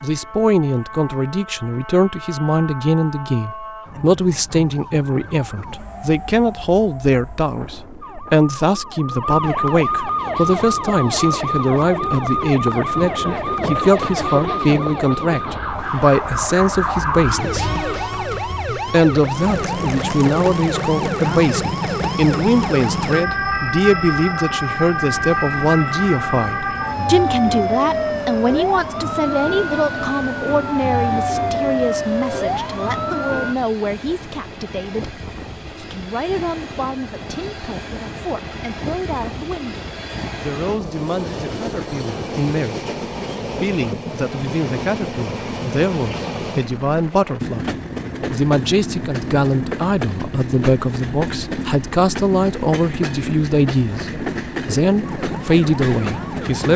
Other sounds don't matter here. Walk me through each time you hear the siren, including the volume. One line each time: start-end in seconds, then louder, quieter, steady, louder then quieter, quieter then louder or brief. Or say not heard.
0.0-33.5 louder
55.0-56.7 brief.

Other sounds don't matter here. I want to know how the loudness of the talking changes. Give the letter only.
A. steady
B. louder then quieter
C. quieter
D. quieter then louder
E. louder
D.